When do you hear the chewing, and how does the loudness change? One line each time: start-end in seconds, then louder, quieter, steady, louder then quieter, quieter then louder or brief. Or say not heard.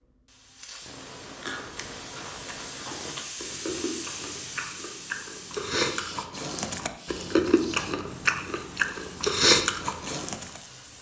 1.4-10.6 louder.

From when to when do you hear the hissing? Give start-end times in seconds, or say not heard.
0.0-10.9.